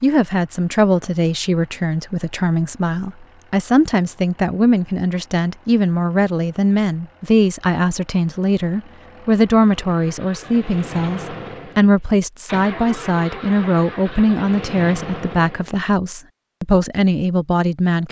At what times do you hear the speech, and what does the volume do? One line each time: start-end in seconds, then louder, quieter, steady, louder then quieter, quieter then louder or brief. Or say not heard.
0.0-18.0 steady.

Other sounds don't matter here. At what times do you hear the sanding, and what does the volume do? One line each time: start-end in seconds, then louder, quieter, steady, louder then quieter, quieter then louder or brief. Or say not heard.
not heard.